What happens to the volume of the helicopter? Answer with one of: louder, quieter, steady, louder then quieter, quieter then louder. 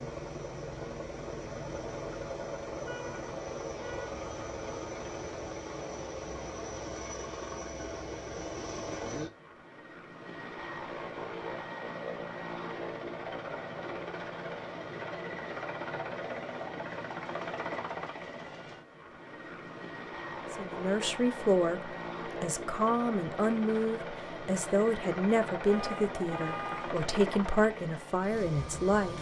steady.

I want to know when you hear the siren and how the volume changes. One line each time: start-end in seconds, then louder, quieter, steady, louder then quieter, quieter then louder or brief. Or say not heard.
not heard.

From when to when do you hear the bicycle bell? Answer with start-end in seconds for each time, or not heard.
not heard.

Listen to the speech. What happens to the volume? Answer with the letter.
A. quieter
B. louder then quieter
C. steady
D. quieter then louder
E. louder
C.